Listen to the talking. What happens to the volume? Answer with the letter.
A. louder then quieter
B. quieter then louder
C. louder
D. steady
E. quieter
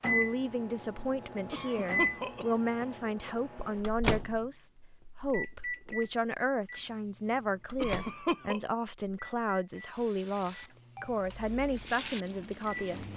D.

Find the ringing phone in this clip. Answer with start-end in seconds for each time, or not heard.
not heard.